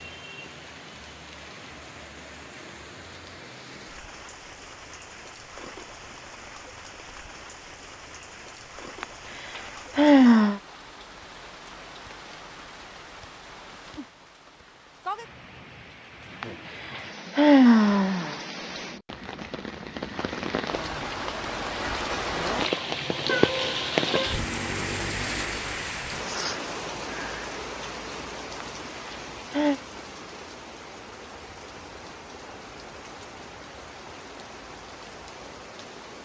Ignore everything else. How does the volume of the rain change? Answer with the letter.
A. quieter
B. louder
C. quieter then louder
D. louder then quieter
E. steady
D.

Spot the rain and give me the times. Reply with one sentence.
The rain can be heard from 0.0 to 36.2 s.